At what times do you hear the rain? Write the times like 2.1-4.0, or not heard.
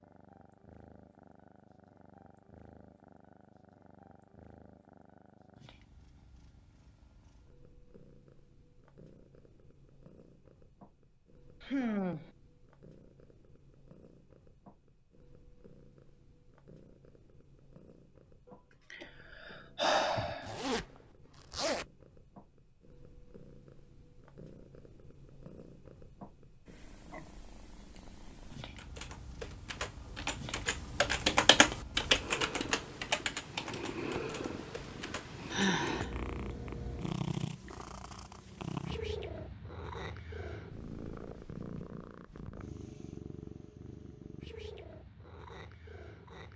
not heard.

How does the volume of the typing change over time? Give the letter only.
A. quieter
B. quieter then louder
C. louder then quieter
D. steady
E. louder
C.